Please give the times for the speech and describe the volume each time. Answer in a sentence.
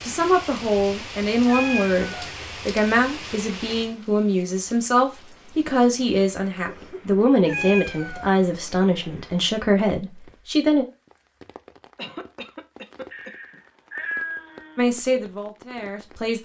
You can hear the speech from 0.0 to 10.8 s, at a steady volume; and briefly from 14.8 to 16.3 s.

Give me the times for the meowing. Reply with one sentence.
The meowing can be heard from 1.4 to 2.3 s, from 7.5 to 8.3 s and from 13.1 to 14.8 s.